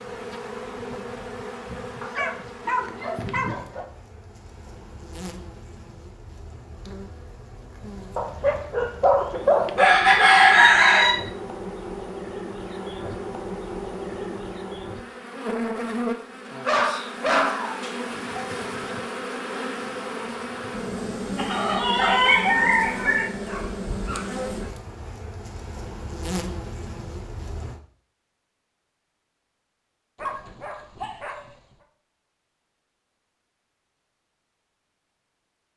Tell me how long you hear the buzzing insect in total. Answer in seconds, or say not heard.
28 s.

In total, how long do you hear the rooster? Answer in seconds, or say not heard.
4 s.